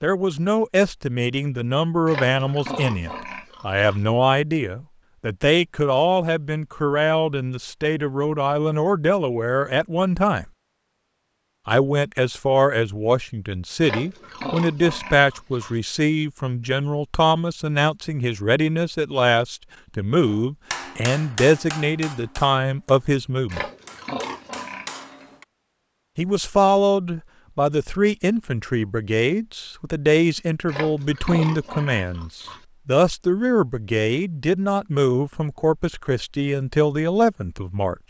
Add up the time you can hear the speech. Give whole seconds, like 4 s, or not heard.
34 s.